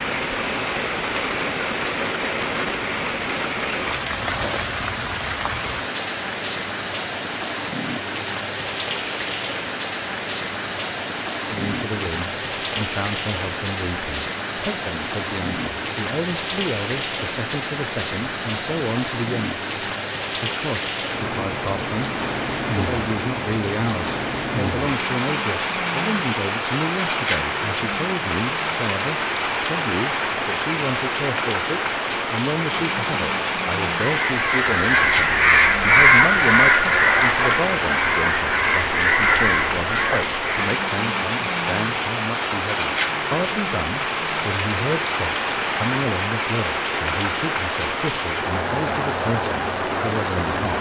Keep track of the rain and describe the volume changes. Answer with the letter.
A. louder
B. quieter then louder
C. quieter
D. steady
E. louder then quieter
D.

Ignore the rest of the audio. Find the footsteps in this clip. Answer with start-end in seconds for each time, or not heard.
not heard.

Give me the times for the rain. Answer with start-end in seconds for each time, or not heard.
0.0-50.7.